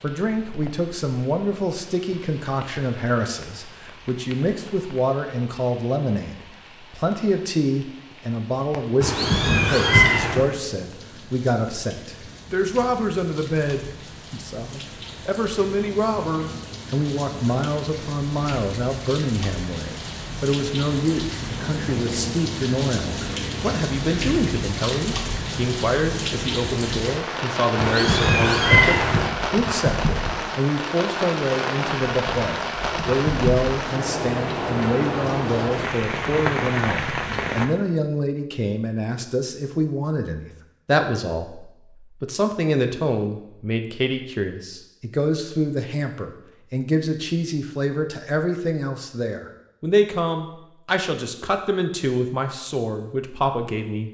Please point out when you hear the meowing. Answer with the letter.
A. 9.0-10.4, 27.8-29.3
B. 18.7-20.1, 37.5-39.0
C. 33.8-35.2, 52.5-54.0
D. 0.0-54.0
A.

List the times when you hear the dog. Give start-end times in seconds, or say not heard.
not heard.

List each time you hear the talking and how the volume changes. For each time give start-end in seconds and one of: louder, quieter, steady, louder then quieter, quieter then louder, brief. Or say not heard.
0.0-54.0 steady.